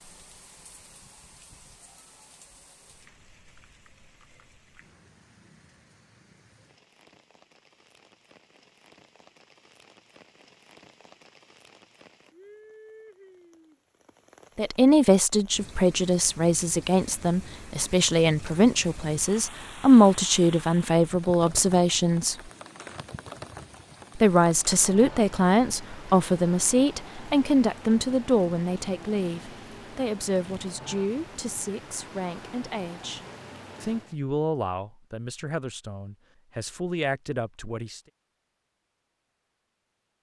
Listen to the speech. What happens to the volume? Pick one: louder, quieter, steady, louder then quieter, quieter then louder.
quieter.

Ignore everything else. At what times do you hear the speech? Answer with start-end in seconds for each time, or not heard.
14.6-22.4, 24.1-33.2, 33.8-38.0.